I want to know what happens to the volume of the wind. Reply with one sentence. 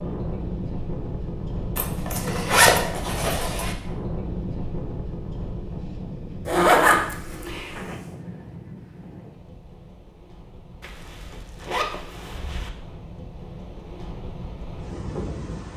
The loudness of the wind goes down, then up.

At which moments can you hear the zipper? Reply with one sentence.
The zipper can be heard from 1.8 to 3.8 s, from 6.5 to 8.0 s and from 10.8 to 12.7 s.